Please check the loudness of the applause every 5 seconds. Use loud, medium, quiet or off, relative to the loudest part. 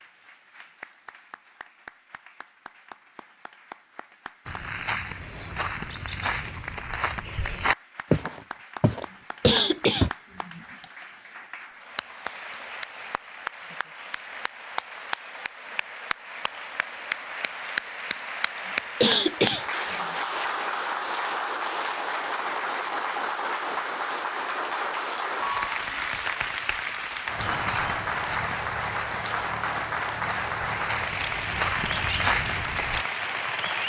quiet, quiet, medium, loud, loud, loud, loud.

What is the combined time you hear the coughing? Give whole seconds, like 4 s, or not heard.
2 s.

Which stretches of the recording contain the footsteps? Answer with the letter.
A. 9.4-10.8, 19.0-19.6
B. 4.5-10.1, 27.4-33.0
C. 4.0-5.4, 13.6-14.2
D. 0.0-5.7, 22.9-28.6
B.